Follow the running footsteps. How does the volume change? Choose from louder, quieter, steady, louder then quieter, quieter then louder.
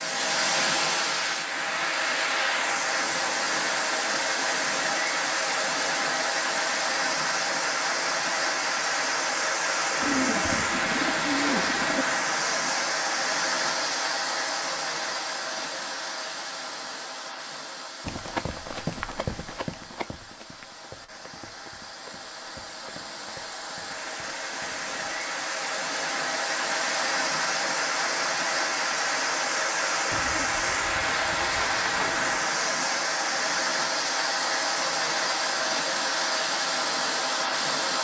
quieter.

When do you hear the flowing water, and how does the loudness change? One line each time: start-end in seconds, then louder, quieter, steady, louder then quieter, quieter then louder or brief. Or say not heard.
0.0-37.9 quieter then louder.